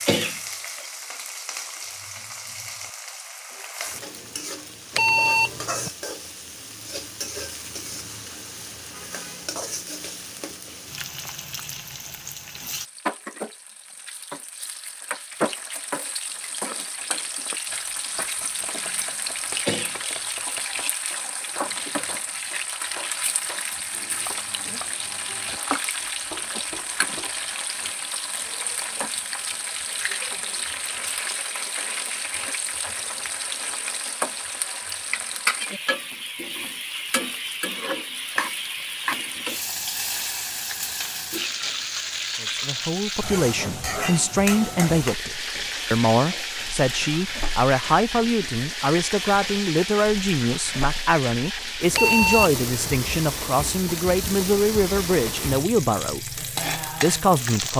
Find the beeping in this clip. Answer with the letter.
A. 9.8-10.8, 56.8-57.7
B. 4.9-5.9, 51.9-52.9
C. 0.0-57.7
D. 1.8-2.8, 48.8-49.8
B.